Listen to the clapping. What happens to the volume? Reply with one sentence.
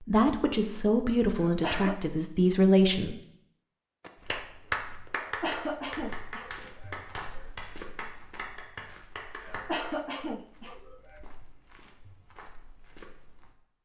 The loudness of the clapping goes down.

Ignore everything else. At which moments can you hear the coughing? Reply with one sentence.
You can hear the coughing from 1.4 to 2.0 s, from 5.2 to 7.5 s and from 9.4 to 11.2 s.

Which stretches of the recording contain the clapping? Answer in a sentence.
The clapping can be heard from 4.0 to 9.8 s.